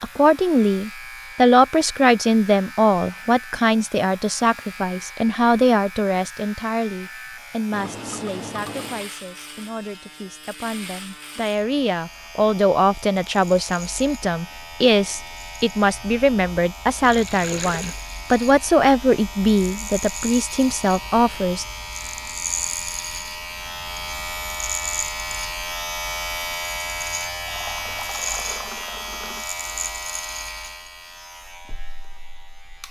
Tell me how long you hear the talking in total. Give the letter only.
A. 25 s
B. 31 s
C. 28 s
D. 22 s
D.